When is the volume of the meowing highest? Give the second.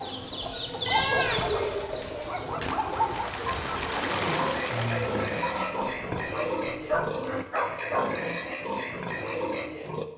1 s.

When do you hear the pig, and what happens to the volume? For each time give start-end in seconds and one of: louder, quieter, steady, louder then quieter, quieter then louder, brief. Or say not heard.
4.0-10.1 steady.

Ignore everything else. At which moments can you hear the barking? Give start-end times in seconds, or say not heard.
0.7-3.5, 5.4-8.2.